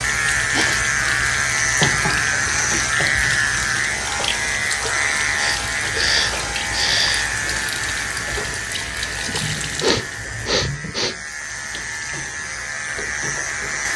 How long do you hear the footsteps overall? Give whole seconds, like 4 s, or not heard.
not heard.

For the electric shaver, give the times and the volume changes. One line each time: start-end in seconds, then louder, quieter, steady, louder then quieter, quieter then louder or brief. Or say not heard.
0.0-13.9 quieter.